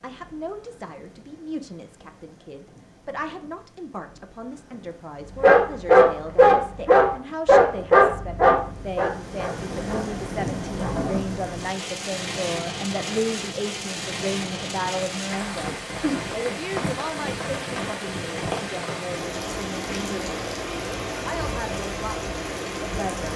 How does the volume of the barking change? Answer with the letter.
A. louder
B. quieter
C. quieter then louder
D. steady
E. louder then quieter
B.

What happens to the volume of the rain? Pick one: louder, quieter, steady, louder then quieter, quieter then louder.
louder.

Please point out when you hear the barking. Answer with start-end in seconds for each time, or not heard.
5.3-11.2.